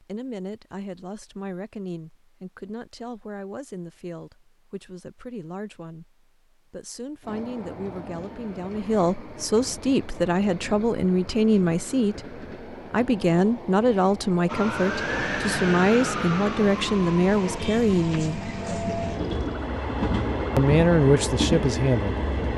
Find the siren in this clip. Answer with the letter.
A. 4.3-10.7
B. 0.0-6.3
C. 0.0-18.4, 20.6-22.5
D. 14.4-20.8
D.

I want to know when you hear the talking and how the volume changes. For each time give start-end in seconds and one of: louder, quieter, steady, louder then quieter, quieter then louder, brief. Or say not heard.
0.0-18.4 louder
20.6-22.5 brief.